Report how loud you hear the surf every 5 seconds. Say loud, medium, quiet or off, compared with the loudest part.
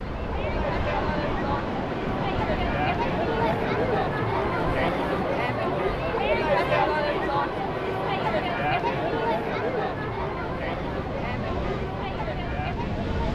loud, medium, loud.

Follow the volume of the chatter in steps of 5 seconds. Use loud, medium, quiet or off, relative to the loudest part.
loud, loud, medium.